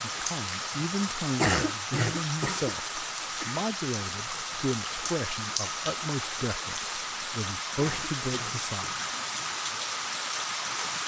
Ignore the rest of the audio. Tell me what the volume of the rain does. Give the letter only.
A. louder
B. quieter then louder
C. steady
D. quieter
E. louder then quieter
C.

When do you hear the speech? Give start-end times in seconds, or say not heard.
0.0-8.9.